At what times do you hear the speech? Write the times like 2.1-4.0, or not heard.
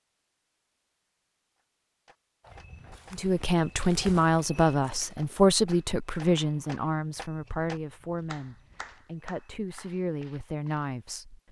3.1-11.4.